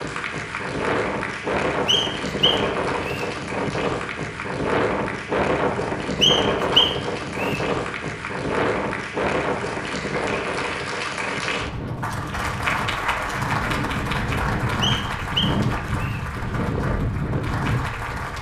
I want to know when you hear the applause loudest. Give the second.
13 s.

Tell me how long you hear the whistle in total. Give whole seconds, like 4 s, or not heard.
4 s.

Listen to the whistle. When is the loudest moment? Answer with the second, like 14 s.
7 s.